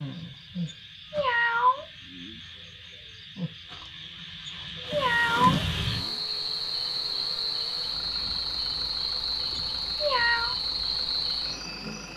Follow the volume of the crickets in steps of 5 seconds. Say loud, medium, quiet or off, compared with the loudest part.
medium, loud, loud.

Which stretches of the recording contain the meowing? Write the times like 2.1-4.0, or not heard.
0.7-2.4, 4.5-6.2, 9.6-10.6.